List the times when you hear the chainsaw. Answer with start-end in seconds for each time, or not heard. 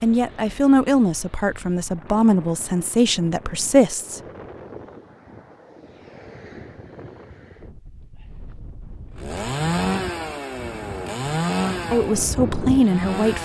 9.2-13.4.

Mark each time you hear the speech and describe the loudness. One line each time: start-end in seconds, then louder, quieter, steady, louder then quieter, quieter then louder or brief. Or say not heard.
0.0-4.2 quieter then louder
11.9-13.4 brief.